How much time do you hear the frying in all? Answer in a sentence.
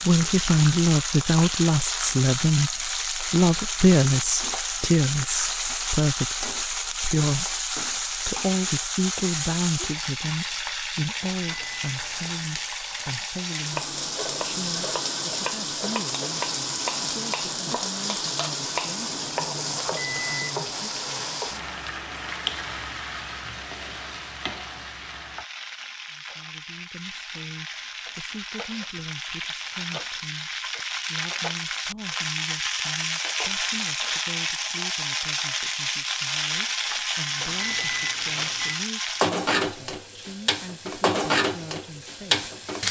The frying can be heard for 43 seconds in total.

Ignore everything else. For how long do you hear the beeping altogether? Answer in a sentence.
The beeping can be heard for 4 seconds in total.